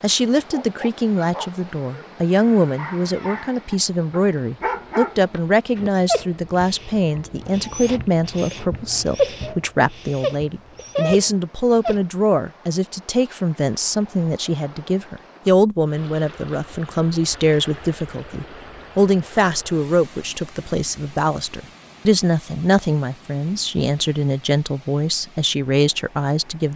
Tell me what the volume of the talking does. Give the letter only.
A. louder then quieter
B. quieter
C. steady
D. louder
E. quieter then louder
C.